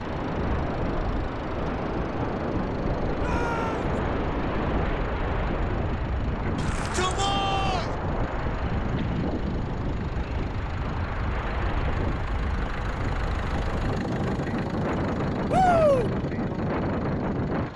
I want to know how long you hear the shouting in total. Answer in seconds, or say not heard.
3 s.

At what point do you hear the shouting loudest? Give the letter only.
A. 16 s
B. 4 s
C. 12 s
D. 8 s
A.